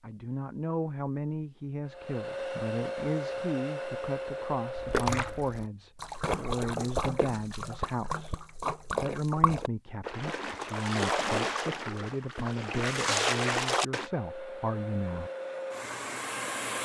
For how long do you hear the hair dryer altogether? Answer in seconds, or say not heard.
7 s.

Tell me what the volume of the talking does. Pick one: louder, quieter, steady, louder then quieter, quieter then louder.
steady.